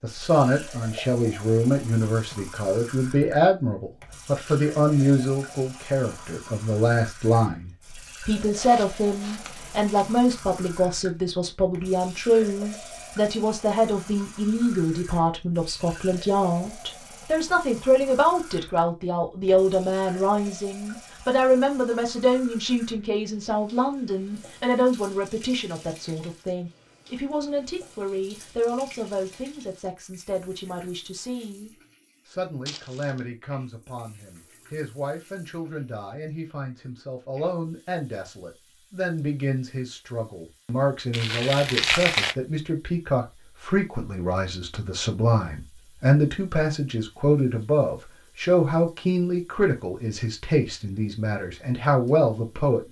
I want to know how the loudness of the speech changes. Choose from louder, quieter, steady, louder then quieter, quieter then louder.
quieter then louder.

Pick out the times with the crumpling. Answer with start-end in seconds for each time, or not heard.
8.5-10.4, 32.6-33.2, 41.1-42.4.